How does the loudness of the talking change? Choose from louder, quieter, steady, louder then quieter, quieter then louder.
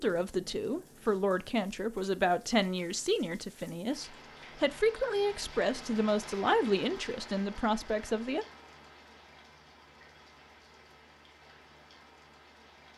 steady.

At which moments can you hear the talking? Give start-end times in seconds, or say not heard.
0.0-8.4.